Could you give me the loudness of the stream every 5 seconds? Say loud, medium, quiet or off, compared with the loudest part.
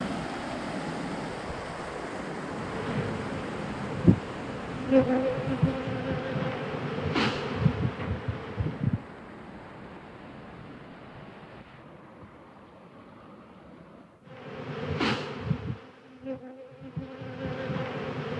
loud, medium, quiet, off.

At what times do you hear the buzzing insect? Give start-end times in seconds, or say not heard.
2.5-9.0, 14.2-18.3.